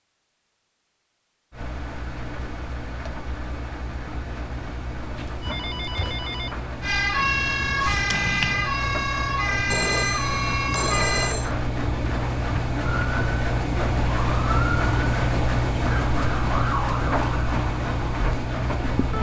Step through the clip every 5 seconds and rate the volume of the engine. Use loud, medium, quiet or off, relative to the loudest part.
medium, medium, loud, loud.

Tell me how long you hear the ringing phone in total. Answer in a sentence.
You can hear the ringing phone for 3 seconds altogether.